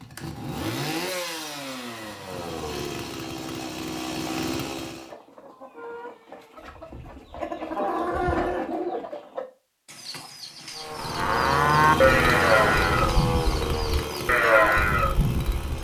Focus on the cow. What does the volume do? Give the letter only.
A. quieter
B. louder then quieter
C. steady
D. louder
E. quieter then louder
E.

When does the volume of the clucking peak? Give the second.
8 s.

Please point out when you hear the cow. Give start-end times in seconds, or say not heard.
10.8-15.7.